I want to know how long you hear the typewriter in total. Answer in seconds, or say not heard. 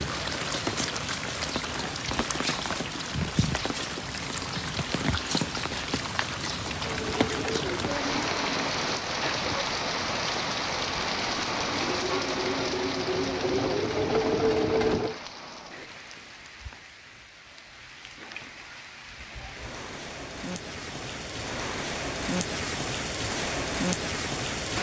not heard.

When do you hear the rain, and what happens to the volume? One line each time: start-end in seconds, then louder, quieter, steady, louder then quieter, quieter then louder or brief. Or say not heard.
0.0-24.7 quieter then louder.